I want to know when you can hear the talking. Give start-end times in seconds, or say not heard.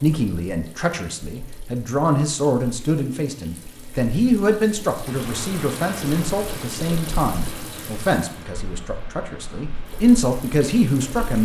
0.0-11.4.